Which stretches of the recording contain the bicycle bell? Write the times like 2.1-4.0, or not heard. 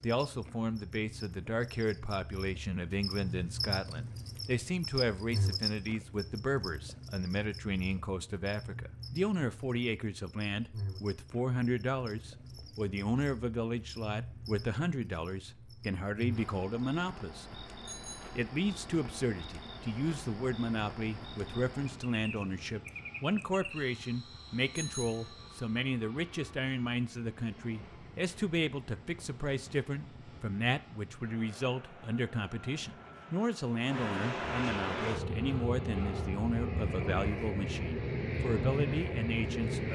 17.9-18.4, 24.7-25.4.